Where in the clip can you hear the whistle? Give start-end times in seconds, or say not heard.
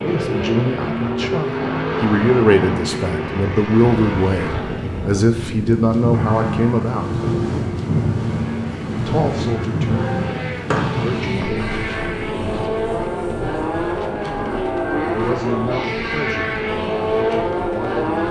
10.7-11.4.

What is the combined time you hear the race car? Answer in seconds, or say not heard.
18 s.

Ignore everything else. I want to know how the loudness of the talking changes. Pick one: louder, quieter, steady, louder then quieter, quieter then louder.
quieter.